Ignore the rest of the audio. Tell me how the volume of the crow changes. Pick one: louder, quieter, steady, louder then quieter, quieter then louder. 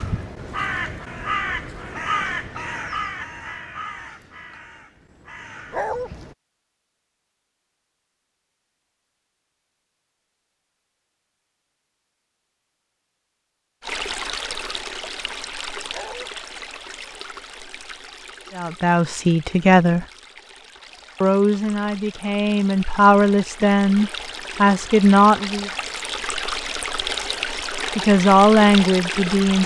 quieter.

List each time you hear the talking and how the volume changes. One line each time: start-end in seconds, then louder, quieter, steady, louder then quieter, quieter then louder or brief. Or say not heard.
18.6-20.1 brief
21.2-25.7 louder
27.9-29.6 brief.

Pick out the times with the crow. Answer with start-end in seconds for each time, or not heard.
0.0-6.3.